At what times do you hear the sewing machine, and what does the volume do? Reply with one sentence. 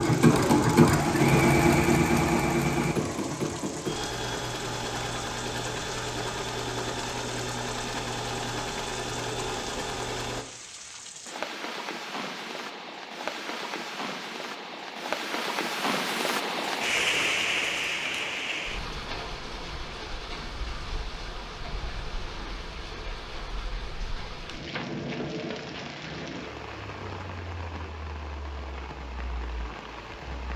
You can hear the sewing machine from 0.0 to 10.4 s, getting quieter.